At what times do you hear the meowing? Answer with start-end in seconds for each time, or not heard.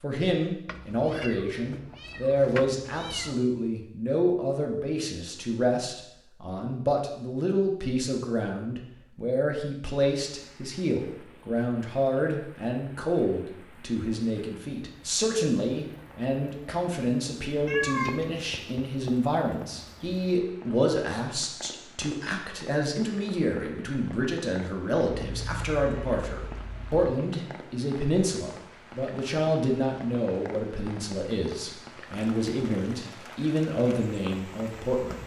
0.7-3.4, 17.6-19.6, 25.1-27.1.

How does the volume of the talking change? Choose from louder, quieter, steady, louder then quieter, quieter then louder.
steady.